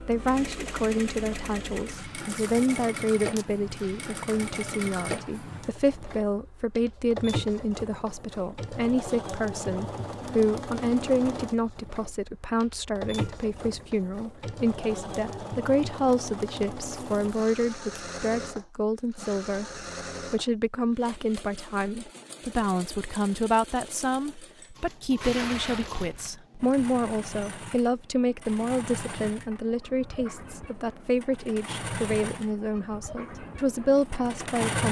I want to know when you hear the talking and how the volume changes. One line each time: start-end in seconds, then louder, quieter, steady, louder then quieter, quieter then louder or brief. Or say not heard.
0.0-34.8 steady.